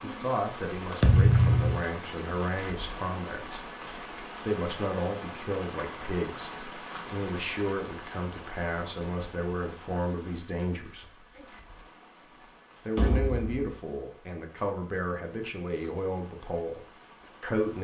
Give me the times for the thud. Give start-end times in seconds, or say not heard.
1.0-1.8, 12.9-13.7.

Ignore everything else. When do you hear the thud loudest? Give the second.
1 s.